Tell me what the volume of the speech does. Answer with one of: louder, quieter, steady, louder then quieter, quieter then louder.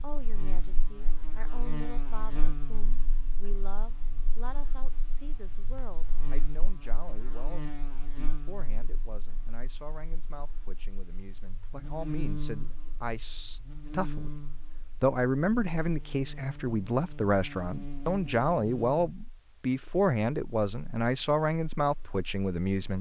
louder.